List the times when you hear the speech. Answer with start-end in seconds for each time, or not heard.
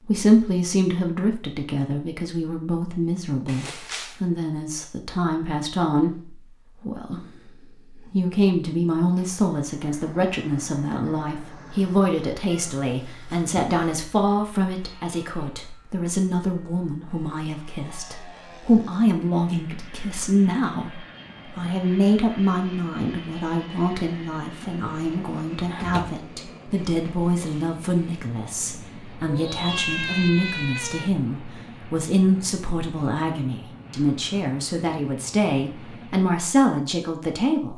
0.0-7.2, 7.9-37.7.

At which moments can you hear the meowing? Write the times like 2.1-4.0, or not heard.
12.4-14.0, 29.2-31.1.